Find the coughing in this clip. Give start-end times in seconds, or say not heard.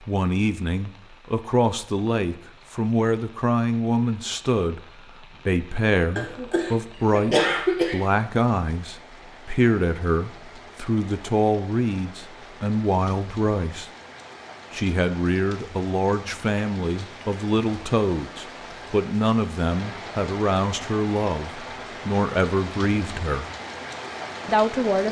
6.2-8.0.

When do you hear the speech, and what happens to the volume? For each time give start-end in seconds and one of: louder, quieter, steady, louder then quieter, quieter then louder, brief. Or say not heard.
0.1-13.9 steady
14.7-23.4 steady
24.4-25.0 brief.